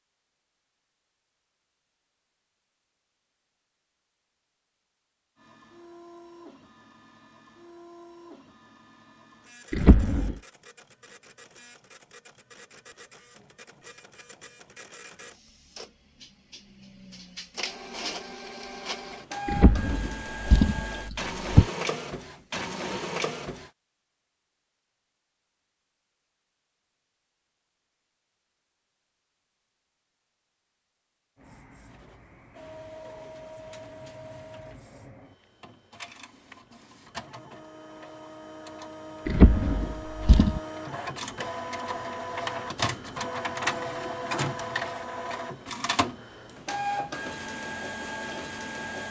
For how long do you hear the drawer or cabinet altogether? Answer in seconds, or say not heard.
4 s.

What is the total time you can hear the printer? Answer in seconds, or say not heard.
36 s.